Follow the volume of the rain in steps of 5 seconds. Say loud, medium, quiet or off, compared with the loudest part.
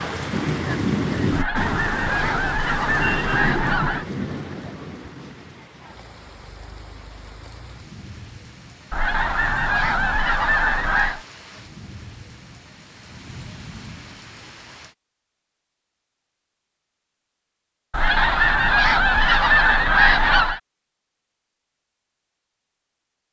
loud, quiet, quiet, off, off.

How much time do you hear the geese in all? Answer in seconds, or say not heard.
8 s.